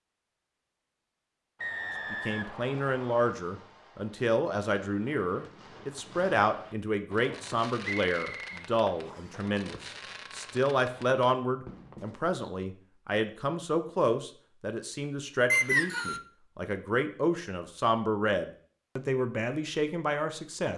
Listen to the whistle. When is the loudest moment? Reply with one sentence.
The loudest moment of the whistle is at 16 seconds.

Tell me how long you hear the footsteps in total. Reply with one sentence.
The footsteps can't be heard in this clip.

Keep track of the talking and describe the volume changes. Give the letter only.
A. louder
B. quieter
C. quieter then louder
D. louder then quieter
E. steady
E.